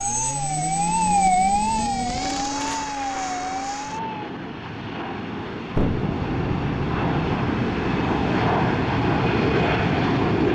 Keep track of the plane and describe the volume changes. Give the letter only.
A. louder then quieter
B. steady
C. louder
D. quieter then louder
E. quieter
C.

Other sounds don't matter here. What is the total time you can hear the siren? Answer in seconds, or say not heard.
4 s.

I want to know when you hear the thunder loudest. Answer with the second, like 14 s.
6 s.